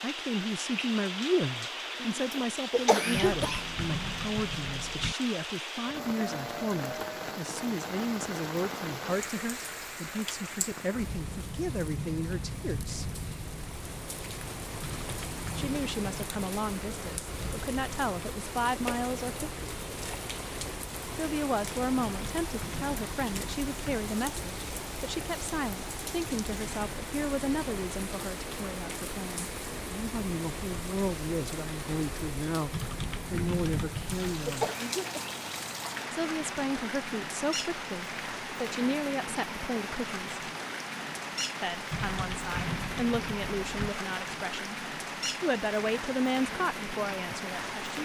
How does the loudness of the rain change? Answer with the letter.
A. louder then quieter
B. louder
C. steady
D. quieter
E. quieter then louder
C.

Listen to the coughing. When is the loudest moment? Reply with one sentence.
The volume of the coughing peaks at 3 seconds.